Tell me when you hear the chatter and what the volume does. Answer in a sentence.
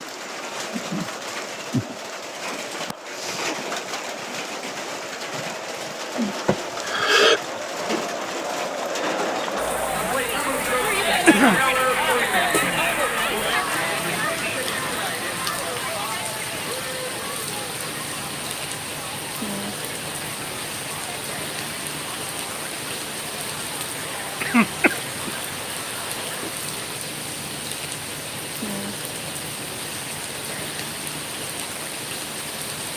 The chatter can be heard from 0.2 to 27.0 s, getting louder then quieter.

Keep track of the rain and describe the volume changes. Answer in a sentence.
The volume of the rain stays about the same.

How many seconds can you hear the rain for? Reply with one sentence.
You can hear the rain for 33 seconds altogether.